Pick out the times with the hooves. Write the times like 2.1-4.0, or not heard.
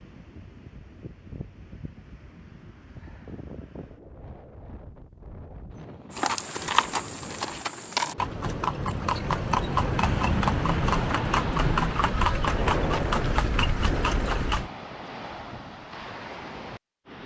6.1-14.7.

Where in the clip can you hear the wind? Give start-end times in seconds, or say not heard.
0.0-17.2.